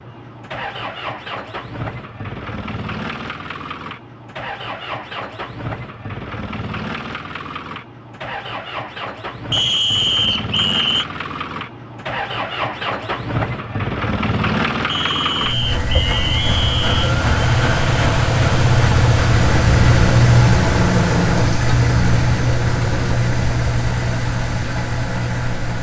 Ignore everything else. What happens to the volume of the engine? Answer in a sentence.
The volume of the engine goes up.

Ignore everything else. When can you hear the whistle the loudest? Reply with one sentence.
The volume of the whistle peaks at 10 seconds.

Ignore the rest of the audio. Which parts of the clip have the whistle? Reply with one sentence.
You can hear the whistle from 9.5 to 11.1 s and from 14.8 to 17.1 s.